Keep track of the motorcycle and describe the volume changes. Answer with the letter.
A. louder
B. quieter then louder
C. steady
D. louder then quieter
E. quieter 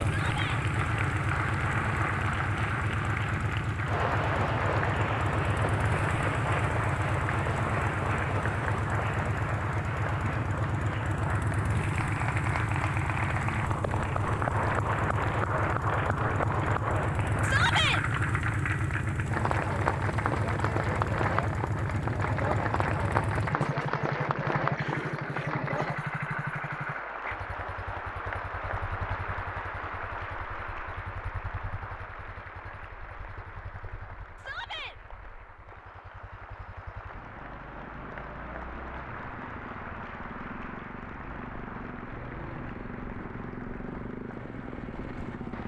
B.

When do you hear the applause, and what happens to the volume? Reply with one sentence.
You can hear the applause from 0.0 to 45.6 s, getting quieter.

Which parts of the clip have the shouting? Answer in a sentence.
The shouting can be heard from 0.0 to 0.6 s, from 17.4 to 18.0 s and from 34.4 to 35.0 s.